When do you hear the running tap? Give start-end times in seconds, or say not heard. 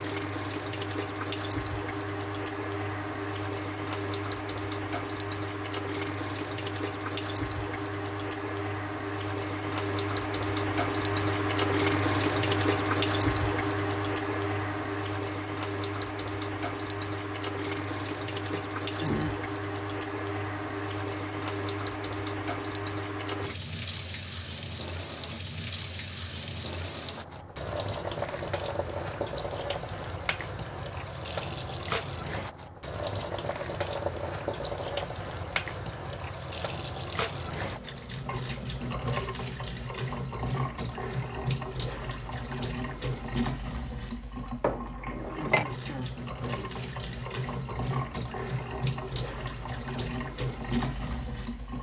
0.0-51.7.